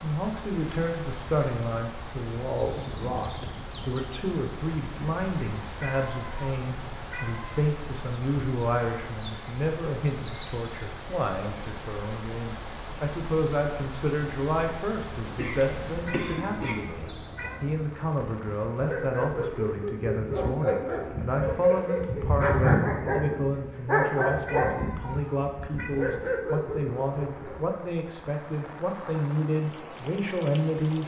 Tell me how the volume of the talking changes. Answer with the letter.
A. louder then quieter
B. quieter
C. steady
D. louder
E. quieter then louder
C.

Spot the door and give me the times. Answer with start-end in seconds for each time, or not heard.
not heard.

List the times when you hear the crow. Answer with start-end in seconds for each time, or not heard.
not heard.